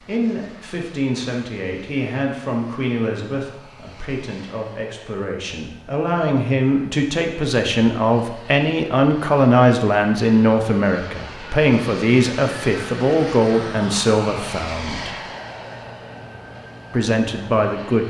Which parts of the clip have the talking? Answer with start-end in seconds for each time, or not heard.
0.0-15.2, 16.9-18.0.